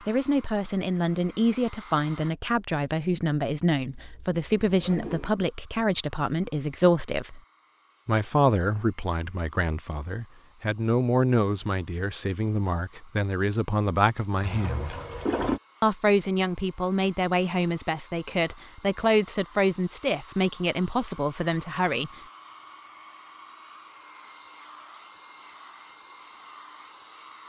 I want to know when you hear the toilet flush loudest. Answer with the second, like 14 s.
15 s.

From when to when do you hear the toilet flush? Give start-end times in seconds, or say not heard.
4.0-5.3, 14.4-15.6.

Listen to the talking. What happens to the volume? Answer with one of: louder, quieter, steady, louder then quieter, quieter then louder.
steady.